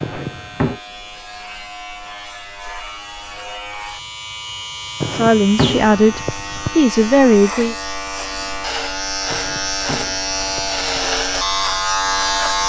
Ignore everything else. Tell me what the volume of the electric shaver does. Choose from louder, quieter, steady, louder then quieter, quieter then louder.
louder.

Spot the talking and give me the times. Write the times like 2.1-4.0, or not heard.
5.1-7.8.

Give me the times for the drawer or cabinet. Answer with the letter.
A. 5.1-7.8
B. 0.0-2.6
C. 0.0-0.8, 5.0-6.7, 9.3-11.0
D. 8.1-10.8
C.